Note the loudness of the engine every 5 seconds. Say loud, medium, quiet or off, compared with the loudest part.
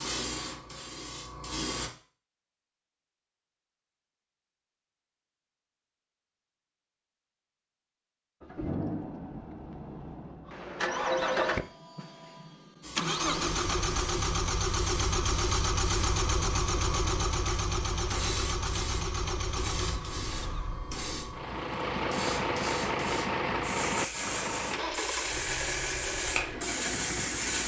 off, medium, loud, loud, loud, medium.